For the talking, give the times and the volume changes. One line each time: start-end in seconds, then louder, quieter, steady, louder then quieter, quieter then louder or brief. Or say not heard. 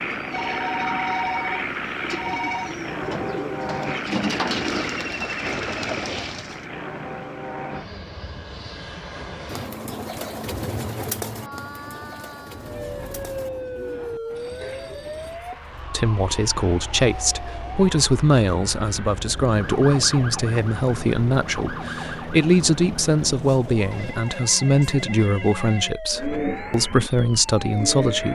15.9-28.3 steady.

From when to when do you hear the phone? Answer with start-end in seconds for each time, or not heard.
0.3-2.8, 14.3-15.3, 23.9-25.9.